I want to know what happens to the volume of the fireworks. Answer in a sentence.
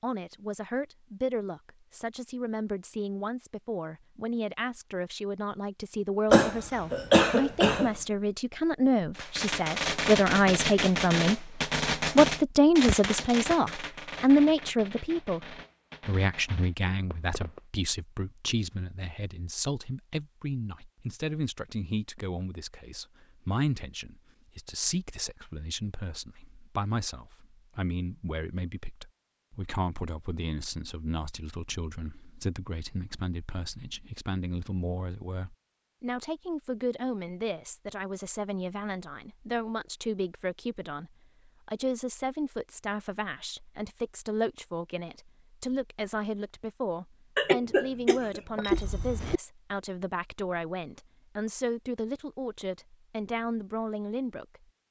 The loudness of the fireworks goes down.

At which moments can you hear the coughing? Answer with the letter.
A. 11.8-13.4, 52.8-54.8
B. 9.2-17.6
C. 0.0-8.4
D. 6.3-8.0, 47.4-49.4
D.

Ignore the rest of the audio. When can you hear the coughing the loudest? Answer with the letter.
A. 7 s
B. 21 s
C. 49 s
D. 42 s
A.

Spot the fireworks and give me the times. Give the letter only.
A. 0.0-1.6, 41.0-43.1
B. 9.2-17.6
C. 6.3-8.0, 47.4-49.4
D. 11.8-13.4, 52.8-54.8
B.